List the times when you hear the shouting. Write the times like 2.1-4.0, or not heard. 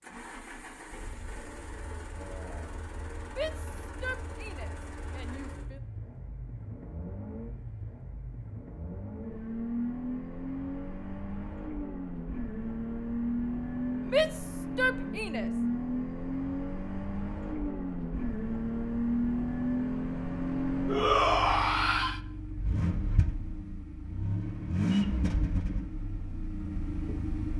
3.2-5.8, 14.0-15.5, 20.9-22.2.